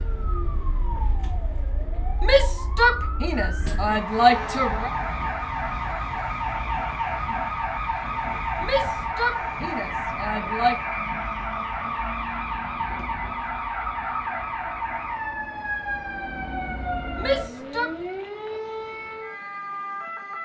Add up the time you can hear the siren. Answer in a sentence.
The siren can be heard for 20 seconds in total.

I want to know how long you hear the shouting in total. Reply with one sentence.
You can hear the shouting for 6 seconds altogether.